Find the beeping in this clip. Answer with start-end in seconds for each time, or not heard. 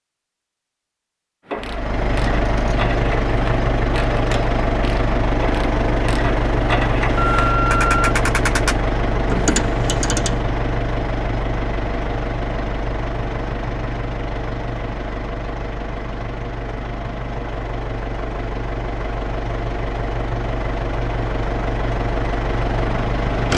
7.2-8.2.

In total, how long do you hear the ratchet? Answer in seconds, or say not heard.
9 s.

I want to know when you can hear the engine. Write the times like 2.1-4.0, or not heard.
1.6-23.5.